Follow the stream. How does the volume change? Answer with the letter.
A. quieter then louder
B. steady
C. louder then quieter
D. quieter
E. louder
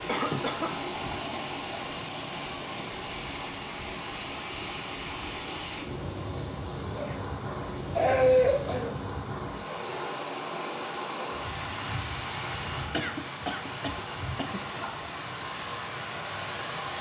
B.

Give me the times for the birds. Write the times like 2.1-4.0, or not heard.
not heard.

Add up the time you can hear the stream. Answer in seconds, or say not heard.
17 s.